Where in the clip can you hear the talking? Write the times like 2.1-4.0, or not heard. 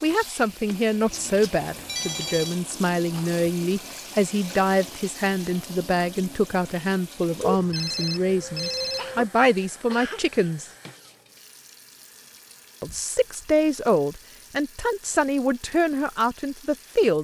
0.0-10.7, 12.8-17.1.